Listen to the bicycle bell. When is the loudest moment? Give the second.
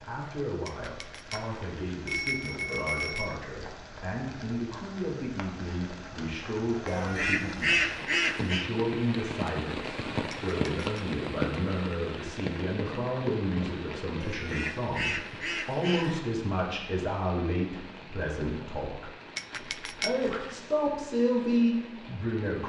2 s.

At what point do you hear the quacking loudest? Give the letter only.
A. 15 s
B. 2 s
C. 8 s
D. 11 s
C.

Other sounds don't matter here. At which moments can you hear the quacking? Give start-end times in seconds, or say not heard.
6.8-8.7, 14.2-16.2.